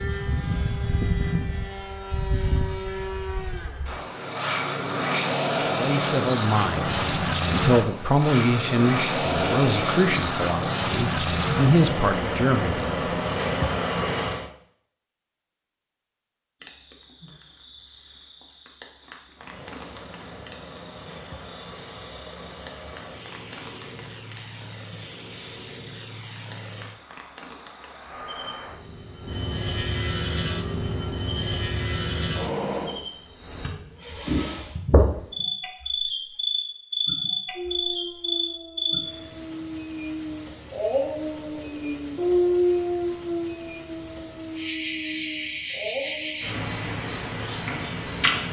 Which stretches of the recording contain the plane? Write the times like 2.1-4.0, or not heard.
0.0-14.5, 19.4-33.0.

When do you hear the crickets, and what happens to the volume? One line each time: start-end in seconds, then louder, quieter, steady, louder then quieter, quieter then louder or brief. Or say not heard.
16.6-48.4 louder.